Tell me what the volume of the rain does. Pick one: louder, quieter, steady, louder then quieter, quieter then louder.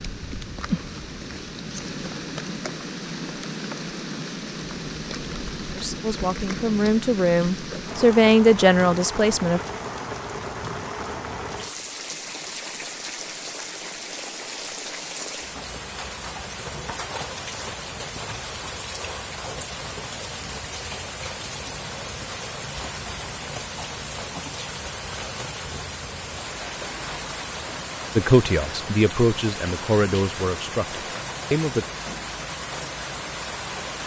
steady.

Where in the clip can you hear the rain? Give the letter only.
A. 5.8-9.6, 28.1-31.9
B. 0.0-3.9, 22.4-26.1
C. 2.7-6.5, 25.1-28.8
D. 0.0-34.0
D.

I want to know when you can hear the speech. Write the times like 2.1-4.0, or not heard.
5.8-9.6, 28.1-31.9.